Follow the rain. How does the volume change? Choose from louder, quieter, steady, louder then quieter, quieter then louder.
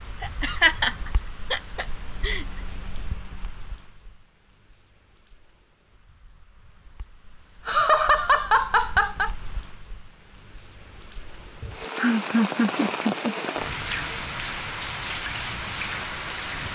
quieter then louder.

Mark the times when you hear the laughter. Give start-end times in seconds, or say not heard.
0.2-0.9, 1.5-2.4, 7.7-9.3, 11.6-14.2.